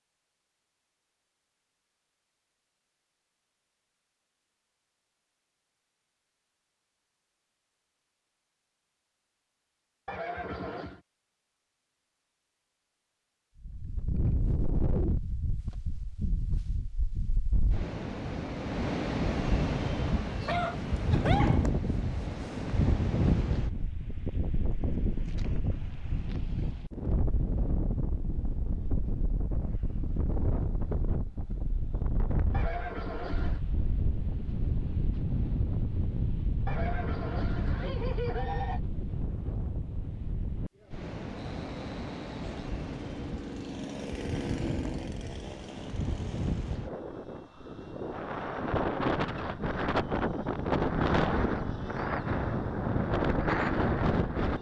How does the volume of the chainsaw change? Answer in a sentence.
The volume of the chainsaw goes up, then down.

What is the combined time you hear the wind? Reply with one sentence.
The wind can be heard for 41 seconds in total.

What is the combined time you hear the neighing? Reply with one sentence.
The neighing can be heard for 4 seconds in total.